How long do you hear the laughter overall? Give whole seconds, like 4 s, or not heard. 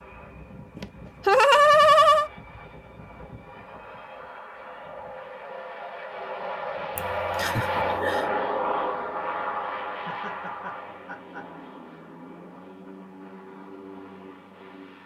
4 s.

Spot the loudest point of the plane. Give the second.
8 s.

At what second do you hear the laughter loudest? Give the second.
2 s.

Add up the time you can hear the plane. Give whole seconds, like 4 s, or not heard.
15 s.